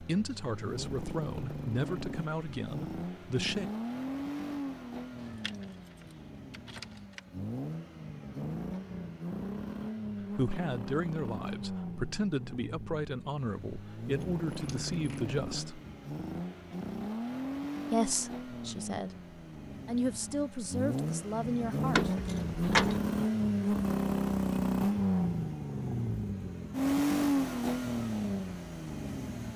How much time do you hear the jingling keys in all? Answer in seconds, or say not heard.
4 s.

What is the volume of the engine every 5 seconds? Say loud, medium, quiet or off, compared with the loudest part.
medium, medium, medium, medium, loud, loud.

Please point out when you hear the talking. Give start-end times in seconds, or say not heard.
0.0-3.7, 10.2-15.8, 17.9-19.1, 19.9-22.1.